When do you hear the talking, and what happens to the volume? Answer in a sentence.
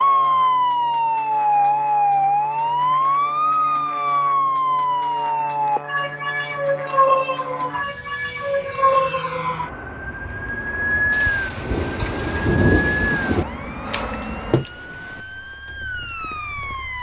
The talking can't be heard in this clip.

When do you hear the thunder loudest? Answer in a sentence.
The loudest moment of the thunder is at 13 seconds.